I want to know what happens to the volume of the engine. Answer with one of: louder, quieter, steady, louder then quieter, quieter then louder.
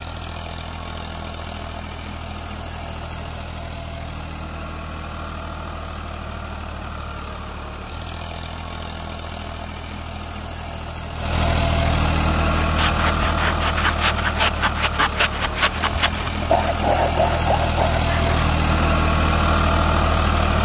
louder.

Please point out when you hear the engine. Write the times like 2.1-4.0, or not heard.
0.0-20.6.